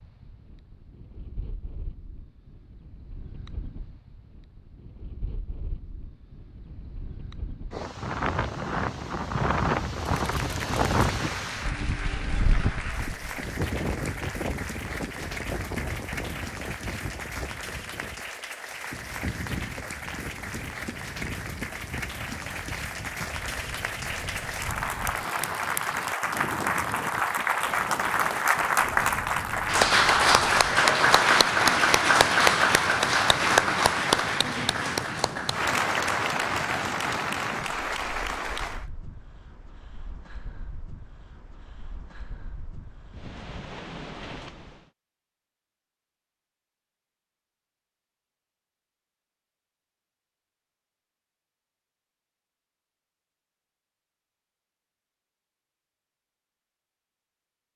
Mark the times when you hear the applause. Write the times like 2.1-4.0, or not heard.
10.2-38.9.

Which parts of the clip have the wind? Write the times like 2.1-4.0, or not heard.
0.0-44.9.